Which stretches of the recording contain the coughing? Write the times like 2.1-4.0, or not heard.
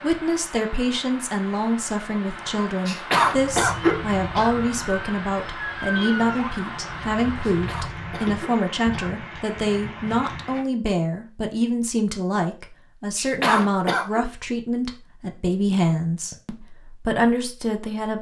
2.9-4.5, 7.4-9.2, 13.2-14.2.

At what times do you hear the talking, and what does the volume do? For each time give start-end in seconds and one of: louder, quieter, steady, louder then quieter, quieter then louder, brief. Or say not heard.
0.0-18.1 steady.